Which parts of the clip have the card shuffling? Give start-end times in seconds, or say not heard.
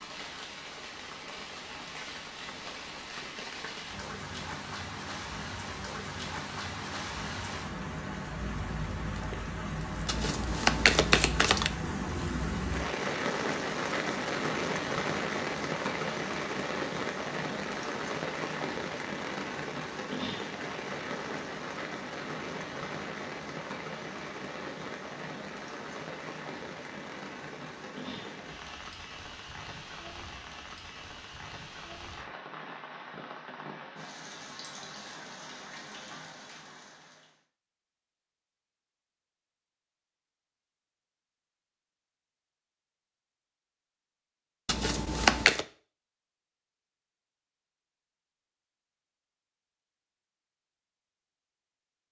10.1-11.7, 44.6-45.6.